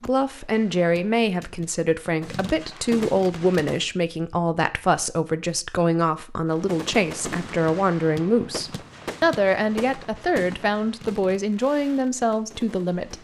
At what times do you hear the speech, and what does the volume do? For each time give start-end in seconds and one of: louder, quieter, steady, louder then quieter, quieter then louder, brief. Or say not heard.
0.0-13.1 steady.